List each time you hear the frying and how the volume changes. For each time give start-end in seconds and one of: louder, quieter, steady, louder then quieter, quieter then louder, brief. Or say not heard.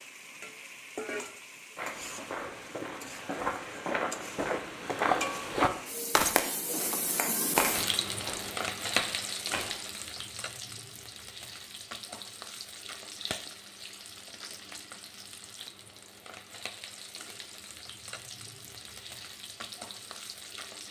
0.0-20.8 louder then quieter.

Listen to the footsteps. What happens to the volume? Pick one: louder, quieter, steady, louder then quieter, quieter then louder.
louder then quieter.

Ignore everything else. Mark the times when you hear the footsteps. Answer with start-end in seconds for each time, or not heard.
1.8-9.8.